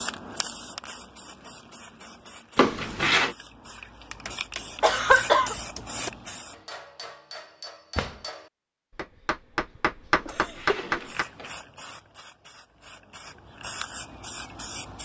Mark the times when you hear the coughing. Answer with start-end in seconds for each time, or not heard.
4.8-5.5, 10.2-10.8.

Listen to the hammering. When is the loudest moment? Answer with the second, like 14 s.
11 s.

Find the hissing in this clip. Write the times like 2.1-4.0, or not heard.
0.0-6.5, 11.0-15.0.